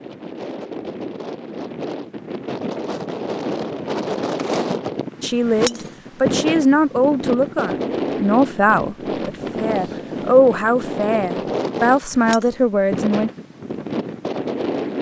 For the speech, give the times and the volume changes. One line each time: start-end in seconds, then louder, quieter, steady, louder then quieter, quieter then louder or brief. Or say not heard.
5.2-13.3 steady.